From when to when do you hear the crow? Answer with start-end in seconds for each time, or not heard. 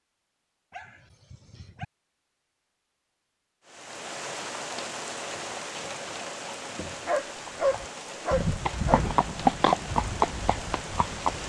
not heard.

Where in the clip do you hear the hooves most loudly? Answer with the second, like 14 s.
10 s.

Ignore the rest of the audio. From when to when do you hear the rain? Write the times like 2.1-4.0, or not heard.
3.6-11.4.